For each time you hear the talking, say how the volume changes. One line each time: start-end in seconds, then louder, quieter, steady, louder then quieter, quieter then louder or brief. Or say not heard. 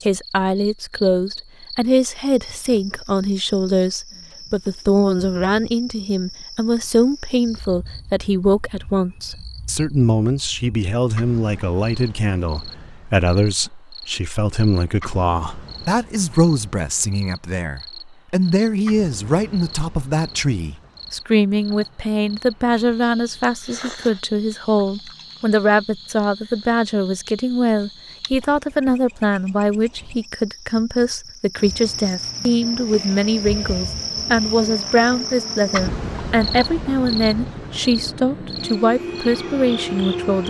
0.0-40.4 steady.